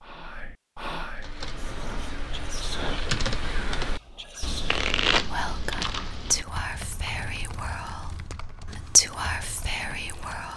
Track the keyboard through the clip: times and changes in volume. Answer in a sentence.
You can hear the keyboard from 1.1 to 10.5 s, getting quieter.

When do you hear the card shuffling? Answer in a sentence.
The card shuffling can be heard from 4.7 to 6.1 s.